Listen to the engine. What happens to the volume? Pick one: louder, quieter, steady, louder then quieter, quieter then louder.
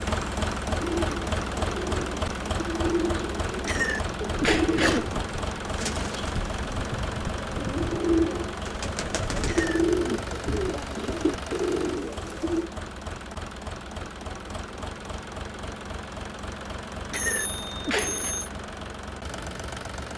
quieter.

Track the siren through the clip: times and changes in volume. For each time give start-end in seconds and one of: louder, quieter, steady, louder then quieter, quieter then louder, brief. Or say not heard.
not heard.